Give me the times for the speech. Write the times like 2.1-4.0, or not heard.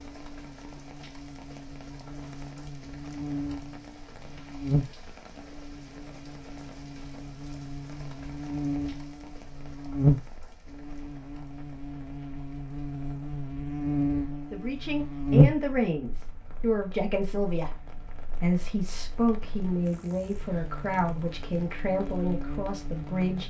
14.5-23.4.